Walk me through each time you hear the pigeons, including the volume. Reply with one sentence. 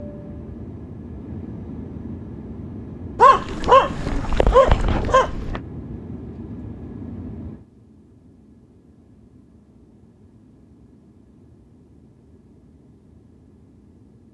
You can't hear the pigeons here.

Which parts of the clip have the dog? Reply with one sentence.
The dog can be heard from 3.1 to 5.6 s.